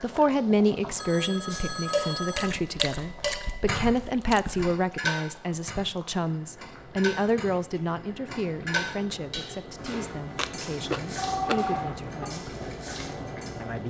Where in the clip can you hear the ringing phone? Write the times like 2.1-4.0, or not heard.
0.9-2.5, 11.2-12.2.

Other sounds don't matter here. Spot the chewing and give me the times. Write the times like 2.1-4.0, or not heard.
2.4-4.7, 10.3-11.7.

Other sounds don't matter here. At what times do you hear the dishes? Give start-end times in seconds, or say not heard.
1.5-13.5.